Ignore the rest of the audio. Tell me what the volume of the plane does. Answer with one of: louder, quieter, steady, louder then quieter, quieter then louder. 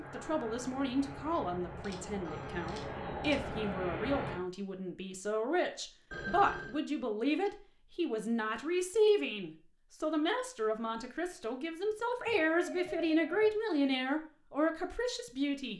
louder.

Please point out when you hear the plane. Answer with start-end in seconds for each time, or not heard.
0.0-4.4.